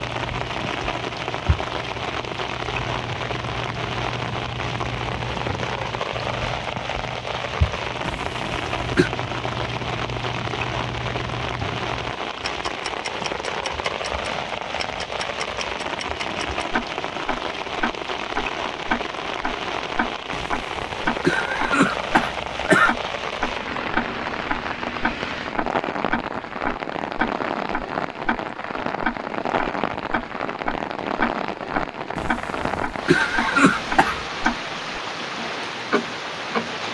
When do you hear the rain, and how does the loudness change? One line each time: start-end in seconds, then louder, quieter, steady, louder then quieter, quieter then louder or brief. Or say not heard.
0.0-36.9 steady.